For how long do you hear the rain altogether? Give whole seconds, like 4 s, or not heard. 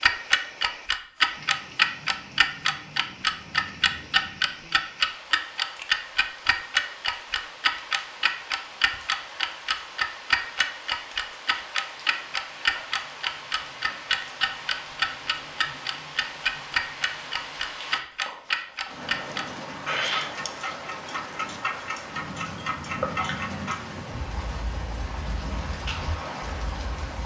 27 s.